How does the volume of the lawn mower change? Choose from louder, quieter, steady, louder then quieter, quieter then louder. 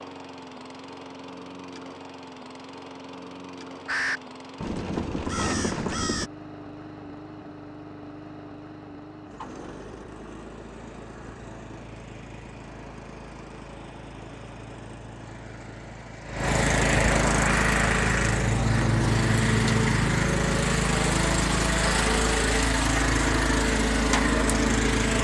louder.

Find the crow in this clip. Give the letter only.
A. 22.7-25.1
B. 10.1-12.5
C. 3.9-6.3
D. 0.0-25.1
C.